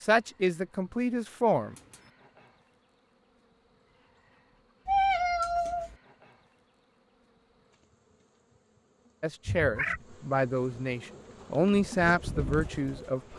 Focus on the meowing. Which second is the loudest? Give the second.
5 s.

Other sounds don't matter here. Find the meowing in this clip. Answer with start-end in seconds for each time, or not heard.
0.9-2.1, 4.8-6.0, 9.4-10.0.